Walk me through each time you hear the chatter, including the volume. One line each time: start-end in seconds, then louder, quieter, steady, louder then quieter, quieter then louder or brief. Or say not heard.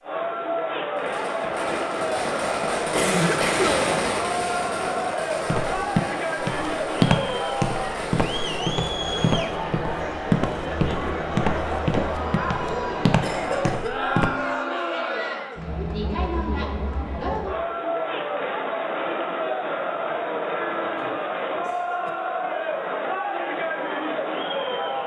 0.0-25.0 steady.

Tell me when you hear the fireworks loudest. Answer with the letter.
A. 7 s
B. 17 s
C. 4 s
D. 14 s
C.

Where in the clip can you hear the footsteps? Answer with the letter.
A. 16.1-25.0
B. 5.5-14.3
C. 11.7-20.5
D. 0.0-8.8
B.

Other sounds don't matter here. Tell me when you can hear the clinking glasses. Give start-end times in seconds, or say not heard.
not heard.